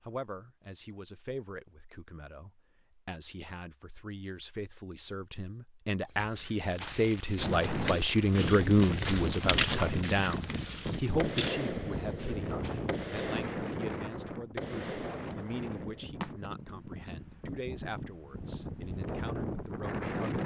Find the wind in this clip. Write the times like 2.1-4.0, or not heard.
7.3-20.4.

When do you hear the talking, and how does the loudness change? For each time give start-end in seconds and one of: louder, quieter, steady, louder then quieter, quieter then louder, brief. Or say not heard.
0.0-20.4 louder then quieter.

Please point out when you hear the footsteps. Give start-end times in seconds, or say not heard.
6.0-12.9.